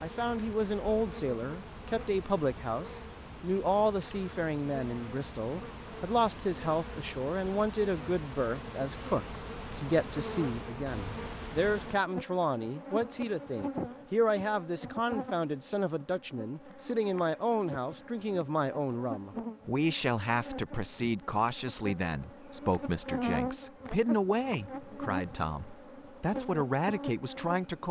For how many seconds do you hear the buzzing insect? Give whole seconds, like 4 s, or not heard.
28 s.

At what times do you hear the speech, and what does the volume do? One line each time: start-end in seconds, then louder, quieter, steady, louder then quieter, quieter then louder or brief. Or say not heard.
0.0-27.8 steady.